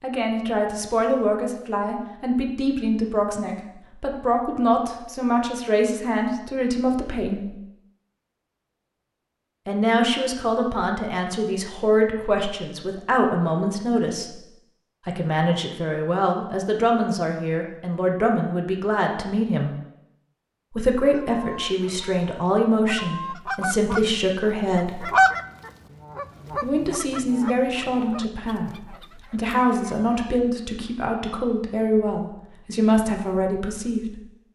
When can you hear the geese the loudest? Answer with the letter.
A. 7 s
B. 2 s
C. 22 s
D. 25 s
D.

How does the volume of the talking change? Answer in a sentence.
The volume of the talking stays about the same.